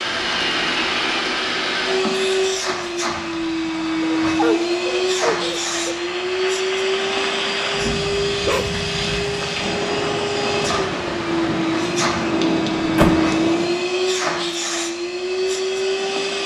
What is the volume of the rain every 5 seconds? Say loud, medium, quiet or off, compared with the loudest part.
medium, loud, loud, off.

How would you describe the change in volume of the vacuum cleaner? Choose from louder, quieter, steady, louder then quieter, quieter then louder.
steady.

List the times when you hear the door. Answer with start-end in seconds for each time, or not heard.
12.1-13.2.